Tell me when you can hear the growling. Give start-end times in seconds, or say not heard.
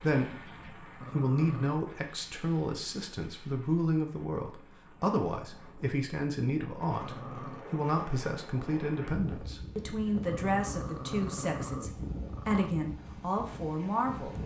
1.0-1.8, 7.0-7.7, 10.2-12.7.